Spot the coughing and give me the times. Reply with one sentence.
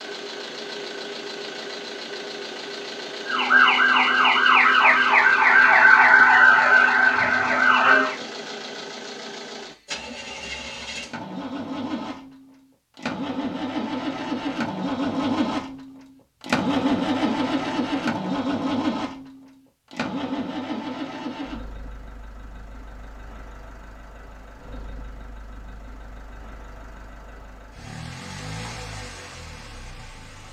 The coughing can't be heard in this clip.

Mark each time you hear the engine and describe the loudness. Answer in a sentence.
The engine can be heard from 0.0 to 30.4 s, getting louder then quieter.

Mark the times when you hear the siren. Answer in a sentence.
The siren can be heard from 3.2 to 8.2 s.